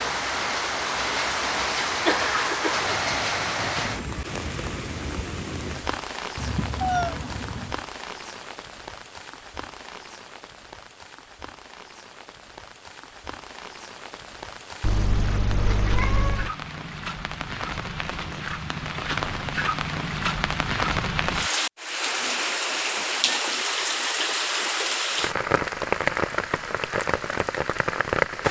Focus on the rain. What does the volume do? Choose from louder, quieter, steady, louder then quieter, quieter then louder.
quieter then louder.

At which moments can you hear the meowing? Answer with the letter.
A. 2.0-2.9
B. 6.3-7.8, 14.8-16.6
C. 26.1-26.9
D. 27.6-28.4
B.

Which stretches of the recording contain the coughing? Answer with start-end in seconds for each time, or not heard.
2.0-2.9.